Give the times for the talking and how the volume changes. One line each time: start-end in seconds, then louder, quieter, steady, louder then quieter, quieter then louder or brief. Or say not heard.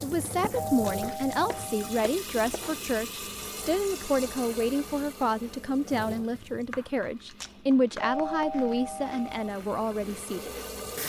0.0-10.5 steady.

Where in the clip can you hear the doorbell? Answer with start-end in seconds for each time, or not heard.
0.6-2.0, 8.0-9.3.